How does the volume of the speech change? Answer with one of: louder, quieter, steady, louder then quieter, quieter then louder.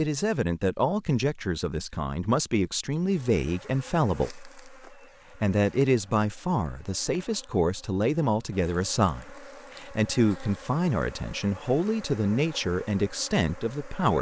steady.